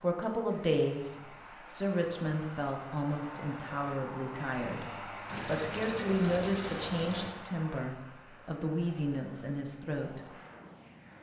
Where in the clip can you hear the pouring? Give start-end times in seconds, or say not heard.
5.2-7.3.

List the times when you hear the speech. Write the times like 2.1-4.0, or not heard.
0.0-10.2.